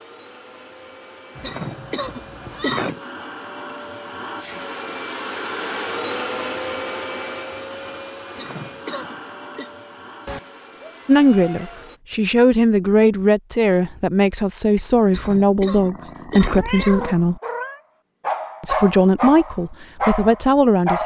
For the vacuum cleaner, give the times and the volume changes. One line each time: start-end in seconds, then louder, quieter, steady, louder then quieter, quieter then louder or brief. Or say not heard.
0.0-12.0 louder then quieter.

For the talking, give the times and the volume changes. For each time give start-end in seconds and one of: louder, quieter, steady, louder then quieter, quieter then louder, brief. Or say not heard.
11.1-17.4 steady
18.6-21.0 brief.